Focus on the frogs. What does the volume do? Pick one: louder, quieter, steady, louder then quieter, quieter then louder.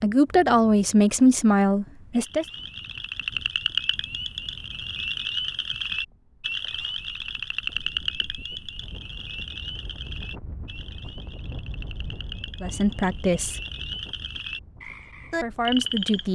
quieter then louder.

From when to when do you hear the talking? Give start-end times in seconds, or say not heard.
0.0-2.5, 12.6-13.6, 14.8-16.3.